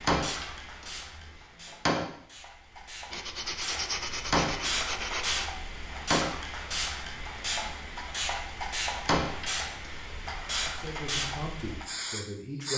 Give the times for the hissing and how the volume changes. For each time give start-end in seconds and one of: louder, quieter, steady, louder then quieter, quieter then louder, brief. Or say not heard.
0.0-12.7 louder.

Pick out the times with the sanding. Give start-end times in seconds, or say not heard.
3.1-5.5.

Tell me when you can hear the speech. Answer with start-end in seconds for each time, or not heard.
10.7-12.7.